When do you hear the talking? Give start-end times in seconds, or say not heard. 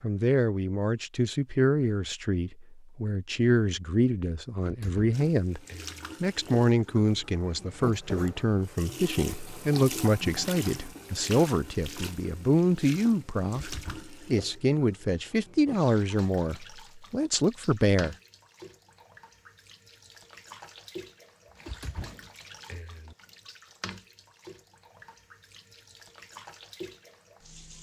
0.0-5.6, 6.2-18.1.